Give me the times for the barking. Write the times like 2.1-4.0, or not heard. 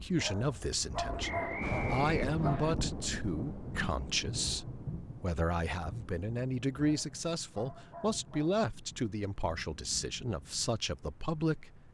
0.1-2.7, 6.8-8.6.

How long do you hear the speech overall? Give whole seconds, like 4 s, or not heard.
12 s.